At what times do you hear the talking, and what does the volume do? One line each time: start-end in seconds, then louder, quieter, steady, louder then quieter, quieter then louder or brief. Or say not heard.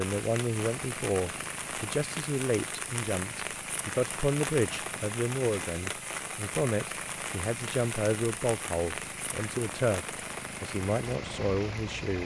0.0-12.2 steady.